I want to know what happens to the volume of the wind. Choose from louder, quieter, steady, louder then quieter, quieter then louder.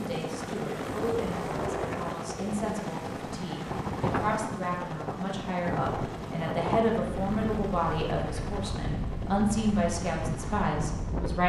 steady.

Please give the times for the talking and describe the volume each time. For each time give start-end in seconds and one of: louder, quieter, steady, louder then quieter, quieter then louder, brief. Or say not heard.
0.0-11.4 louder.